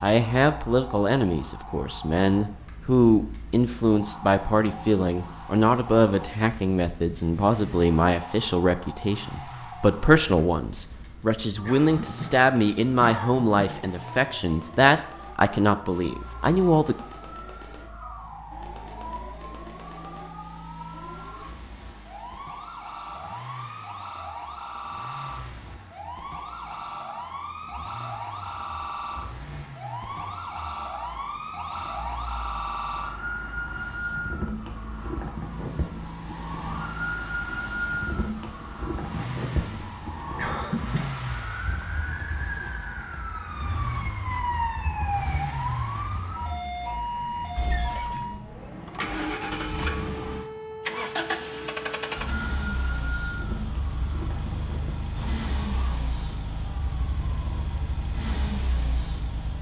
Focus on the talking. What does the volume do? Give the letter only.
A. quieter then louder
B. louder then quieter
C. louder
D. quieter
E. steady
E.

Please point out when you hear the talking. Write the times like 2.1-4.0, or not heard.
0.0-16.9.